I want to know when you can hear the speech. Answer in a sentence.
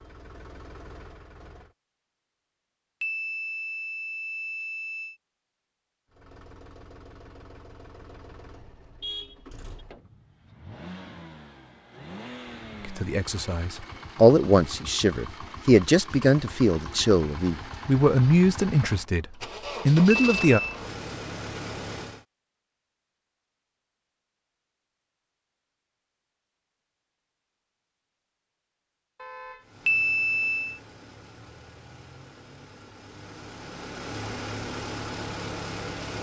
You can hear the speech from 12.8 to 19.2 s and from 19.9 to 20.6 s.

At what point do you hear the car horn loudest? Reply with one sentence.
The loudest moment of the car horn is at 9 seconds.